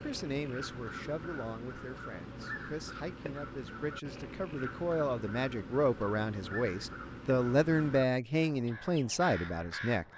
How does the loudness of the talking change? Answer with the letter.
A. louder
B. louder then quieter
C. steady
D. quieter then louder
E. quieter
A.